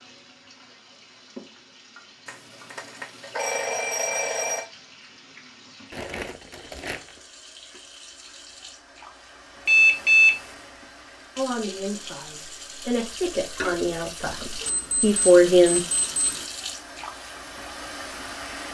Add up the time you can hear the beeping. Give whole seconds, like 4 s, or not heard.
5 s.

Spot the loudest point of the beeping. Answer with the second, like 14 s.
10 s.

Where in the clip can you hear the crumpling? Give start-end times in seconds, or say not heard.
5.9-7.2.